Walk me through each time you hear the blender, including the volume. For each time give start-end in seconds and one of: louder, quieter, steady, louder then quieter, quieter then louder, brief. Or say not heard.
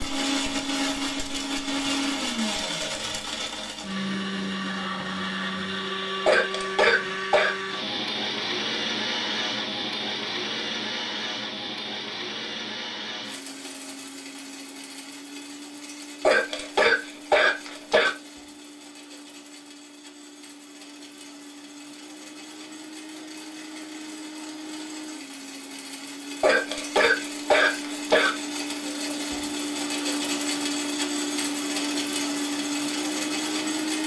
0.0-34.0 quieter then louder.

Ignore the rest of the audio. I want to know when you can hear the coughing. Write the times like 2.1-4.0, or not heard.
6.2-7.5, 16.2-18.1, 26.4-28.4.